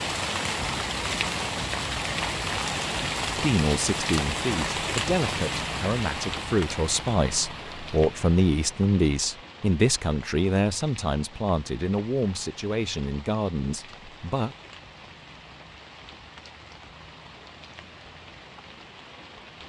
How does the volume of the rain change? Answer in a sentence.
The loudness of the rain goes down.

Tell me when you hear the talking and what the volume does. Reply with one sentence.
The talking can be heard from 3.4 to 14.6 s, getting louder then quieter.